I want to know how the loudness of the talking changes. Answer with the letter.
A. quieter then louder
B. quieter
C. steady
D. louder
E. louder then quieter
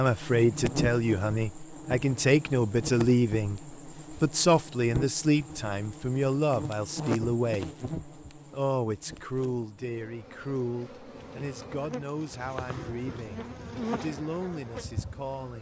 B.